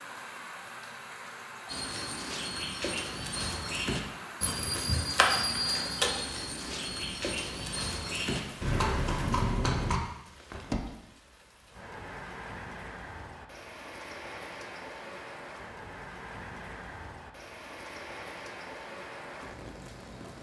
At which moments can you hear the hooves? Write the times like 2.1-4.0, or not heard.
1.6-10.0.